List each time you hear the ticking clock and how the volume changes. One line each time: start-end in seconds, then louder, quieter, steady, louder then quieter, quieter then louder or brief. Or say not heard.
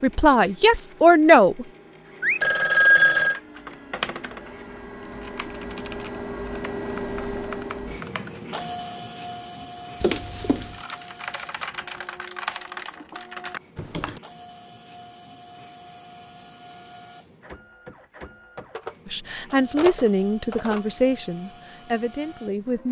not heard.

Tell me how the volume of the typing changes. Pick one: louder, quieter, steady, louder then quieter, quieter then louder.
quieter then louder.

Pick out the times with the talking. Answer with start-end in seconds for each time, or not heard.
0.0-1.6, 19.1-22.8.